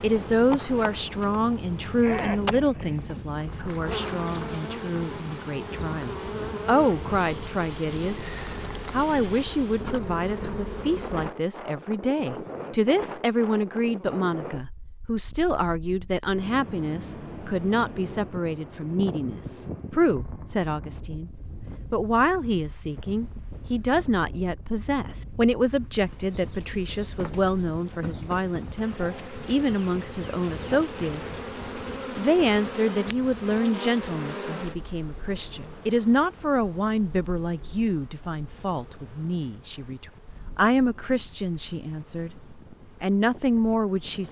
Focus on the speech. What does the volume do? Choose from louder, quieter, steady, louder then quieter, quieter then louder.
steady.